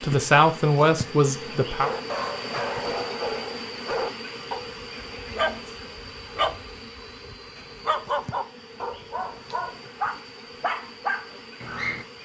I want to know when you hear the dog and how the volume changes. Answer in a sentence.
The dog can be heard from 1.8 to 12.1 s, at a steady volume.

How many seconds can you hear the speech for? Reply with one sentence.
The speech can be heard for 2 seconds in total.